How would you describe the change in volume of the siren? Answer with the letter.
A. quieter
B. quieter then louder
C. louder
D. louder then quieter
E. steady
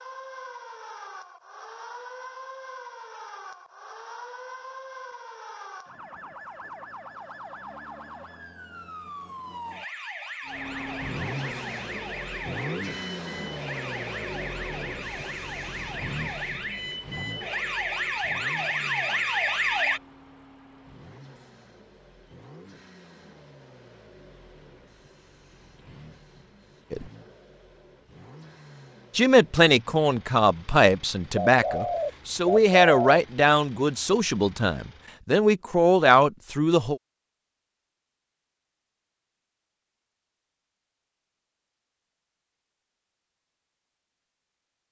C.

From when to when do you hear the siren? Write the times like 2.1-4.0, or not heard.
0.0-20.0.